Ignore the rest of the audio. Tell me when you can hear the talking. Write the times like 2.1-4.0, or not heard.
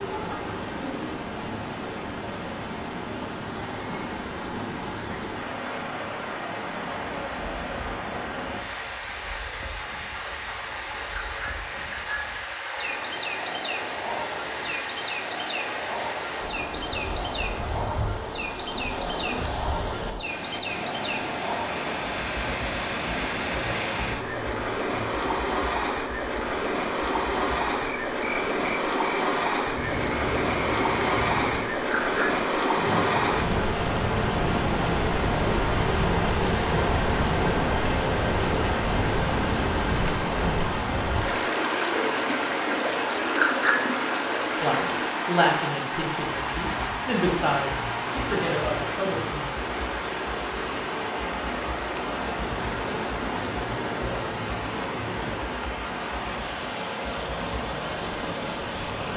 44.6-49.5.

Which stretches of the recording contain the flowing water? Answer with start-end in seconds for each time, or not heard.
0.0-59.1.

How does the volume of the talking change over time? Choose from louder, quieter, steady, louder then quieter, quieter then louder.
quieter then louder.